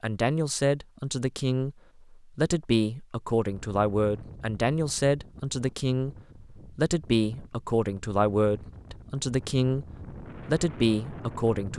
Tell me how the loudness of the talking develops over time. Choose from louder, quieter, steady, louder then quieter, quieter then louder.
steady.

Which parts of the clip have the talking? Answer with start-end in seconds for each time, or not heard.
0.0-11.7.